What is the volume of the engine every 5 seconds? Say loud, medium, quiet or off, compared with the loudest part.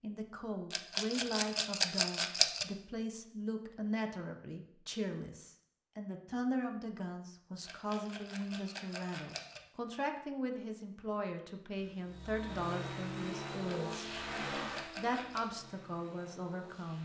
off, off, loud, quiet.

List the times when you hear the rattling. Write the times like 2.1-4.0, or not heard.
0.7-2.6, 7.7-9.6, 13.7-15.6.